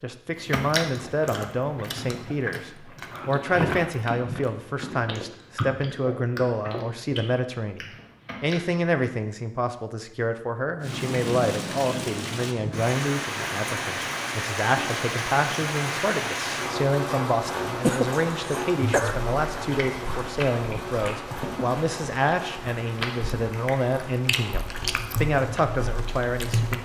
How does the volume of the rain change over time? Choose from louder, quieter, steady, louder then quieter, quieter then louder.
quieter.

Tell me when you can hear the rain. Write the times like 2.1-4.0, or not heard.
10.8-26.8.